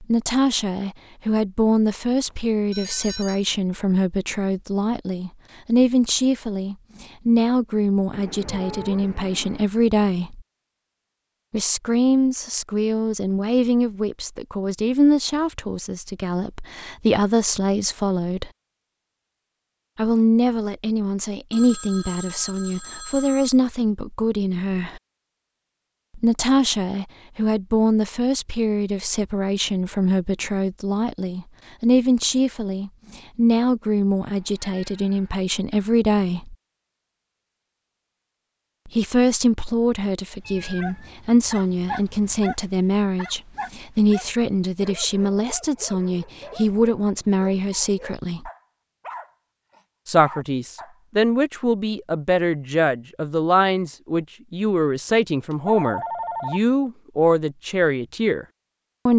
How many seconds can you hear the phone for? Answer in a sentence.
You can hear the phone for 4 seconds altogether.